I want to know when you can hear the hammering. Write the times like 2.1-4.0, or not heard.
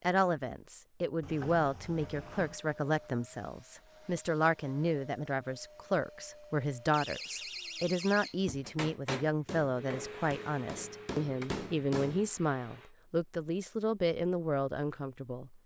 8.7-12.3.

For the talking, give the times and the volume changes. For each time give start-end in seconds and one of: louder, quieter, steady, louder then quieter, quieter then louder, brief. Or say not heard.
0.0-15.6 steady.